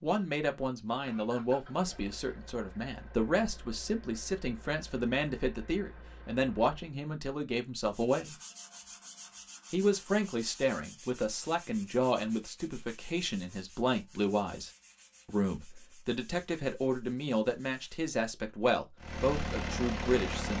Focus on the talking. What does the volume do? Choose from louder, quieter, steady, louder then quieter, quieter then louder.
steady.